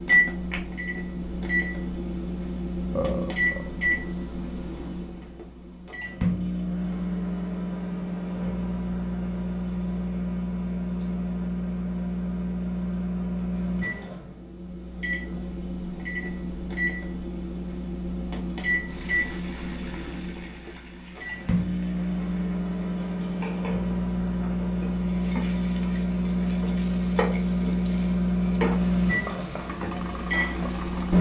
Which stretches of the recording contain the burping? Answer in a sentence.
You can hear the burping from 3.0 to 3.8 s.